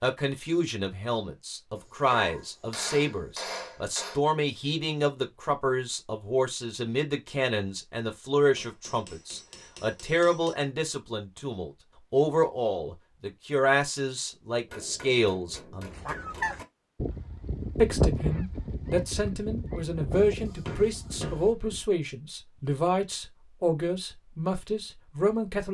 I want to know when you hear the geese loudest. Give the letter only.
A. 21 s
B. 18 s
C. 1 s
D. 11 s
B.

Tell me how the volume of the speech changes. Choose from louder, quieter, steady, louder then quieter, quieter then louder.
steady.